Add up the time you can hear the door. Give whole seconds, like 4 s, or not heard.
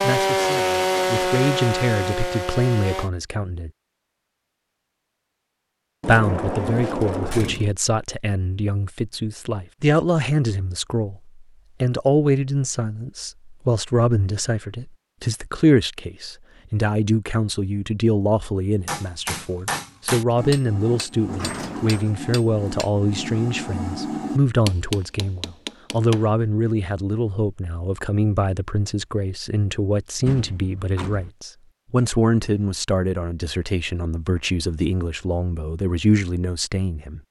4 s.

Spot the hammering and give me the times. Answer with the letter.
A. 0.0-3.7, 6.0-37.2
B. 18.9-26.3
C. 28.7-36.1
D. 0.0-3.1
B.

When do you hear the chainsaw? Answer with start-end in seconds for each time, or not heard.
0.0-3.1.